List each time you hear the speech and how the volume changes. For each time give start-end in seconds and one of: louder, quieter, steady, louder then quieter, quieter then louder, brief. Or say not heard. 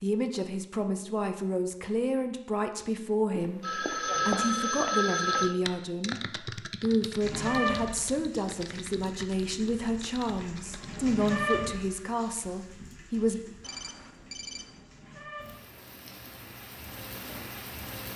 0.0-13.4 steady.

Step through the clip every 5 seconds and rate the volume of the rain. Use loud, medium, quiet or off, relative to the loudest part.
off, loud, loud, medium.